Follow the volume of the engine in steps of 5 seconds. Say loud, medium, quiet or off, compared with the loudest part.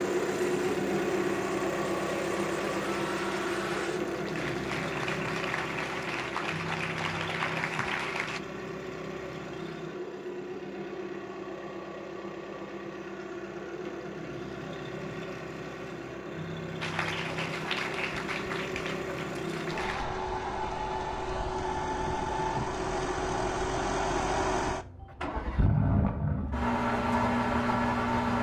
loud, medium, medium, medium, loud, loud.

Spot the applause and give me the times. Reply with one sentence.
The applause can be heard from 0.0 to 8.4 s and from 16.8 to 20.1 s.